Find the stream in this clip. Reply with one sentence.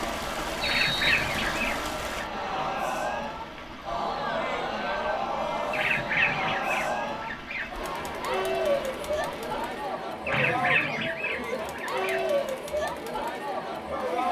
The stream can be heard from 0.0 to 9.9 s.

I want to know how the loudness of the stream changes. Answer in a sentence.
The volume of the stream goes down.